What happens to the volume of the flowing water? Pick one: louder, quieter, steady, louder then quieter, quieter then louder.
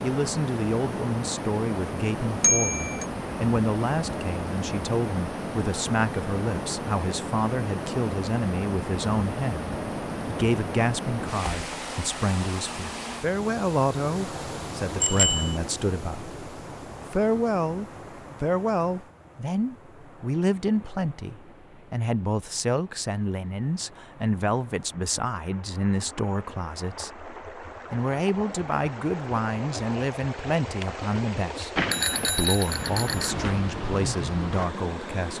quieter then louder.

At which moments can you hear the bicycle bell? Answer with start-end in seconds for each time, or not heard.
2.4-3.0, 15.0-15.6, 31.8-33.5.